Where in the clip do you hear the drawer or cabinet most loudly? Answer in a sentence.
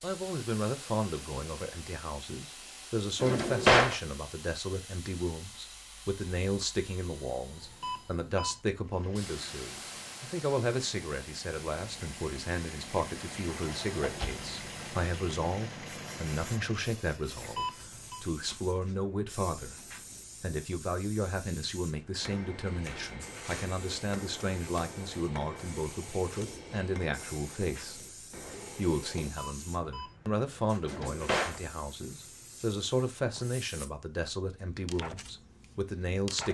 The volume of the drawer or cabinet peaks at 4 seconds.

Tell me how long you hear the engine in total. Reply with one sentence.
You can hear the engine for 8 seconds altogether.